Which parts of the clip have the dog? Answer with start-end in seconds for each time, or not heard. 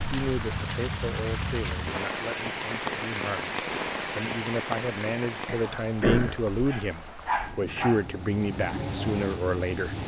0.1-1.8, 6.7-8.1.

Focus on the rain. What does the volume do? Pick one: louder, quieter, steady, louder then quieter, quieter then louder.
quieter then louder.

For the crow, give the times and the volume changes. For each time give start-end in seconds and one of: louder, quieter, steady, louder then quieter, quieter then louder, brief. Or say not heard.
not heard.